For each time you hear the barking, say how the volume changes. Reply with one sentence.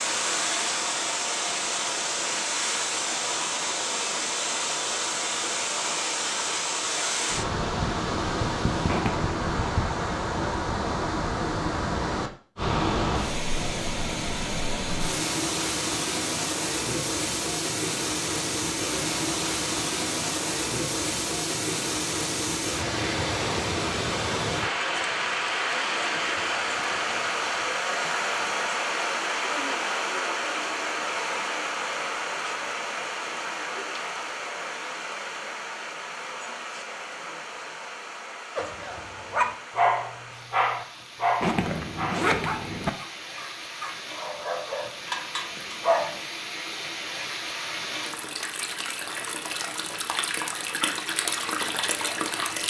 The barking can be heard from 38.5 to 46.2 s, getting quieter then louder.